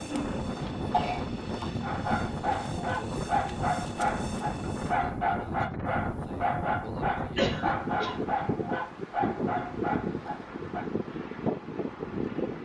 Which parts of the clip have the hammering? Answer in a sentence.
The hammering can't be heard in this clip.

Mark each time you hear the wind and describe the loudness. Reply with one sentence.
You can hear the wind from 0.0 to 12.6 s, at a steady volume.